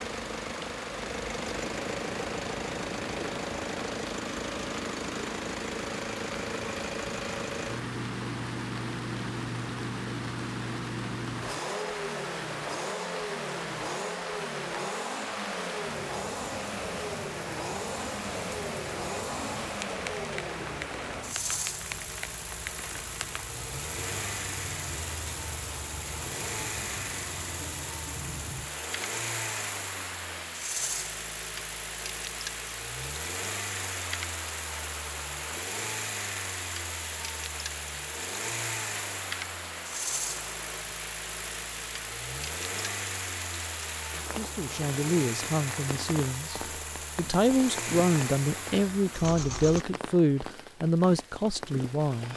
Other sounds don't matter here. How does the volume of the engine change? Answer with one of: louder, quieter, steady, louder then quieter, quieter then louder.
steady.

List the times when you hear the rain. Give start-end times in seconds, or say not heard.
0.0-52.3.